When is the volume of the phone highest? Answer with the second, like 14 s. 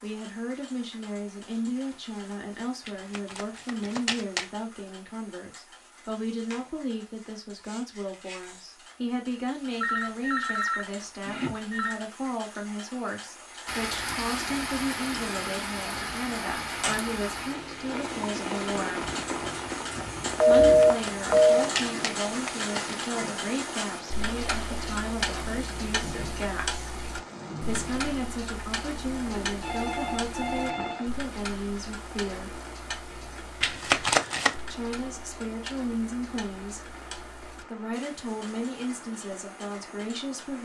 21 s.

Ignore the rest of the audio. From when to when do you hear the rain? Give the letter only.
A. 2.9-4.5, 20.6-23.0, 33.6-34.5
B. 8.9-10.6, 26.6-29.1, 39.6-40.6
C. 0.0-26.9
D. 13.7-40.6
D.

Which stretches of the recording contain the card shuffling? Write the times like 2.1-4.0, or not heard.
2.9-4.5, 20.6-23.0, 33.6-34.5.